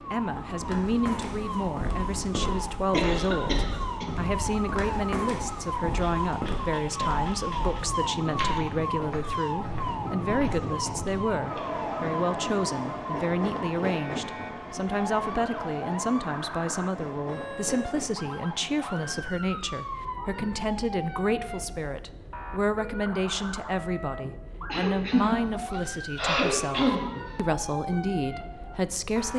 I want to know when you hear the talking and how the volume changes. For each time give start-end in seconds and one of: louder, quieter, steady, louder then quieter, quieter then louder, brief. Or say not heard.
0.1-29.3 steady.